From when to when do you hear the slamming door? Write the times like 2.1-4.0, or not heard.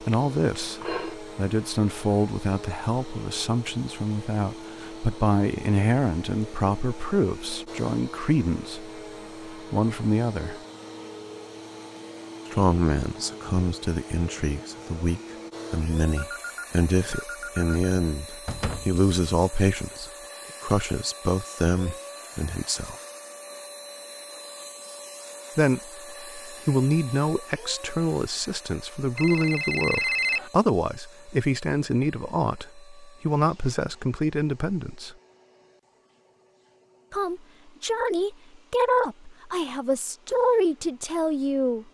18.4-19.0.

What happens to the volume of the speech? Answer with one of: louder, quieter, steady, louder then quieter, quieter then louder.
steady.